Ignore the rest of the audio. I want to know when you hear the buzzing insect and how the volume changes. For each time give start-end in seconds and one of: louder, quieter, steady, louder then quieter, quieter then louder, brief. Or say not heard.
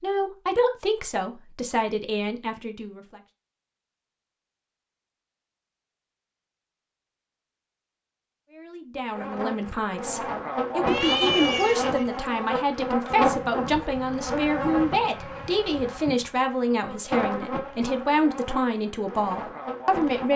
9.1-20.3 quieter.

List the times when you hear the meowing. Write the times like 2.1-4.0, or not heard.
10.8-12.3.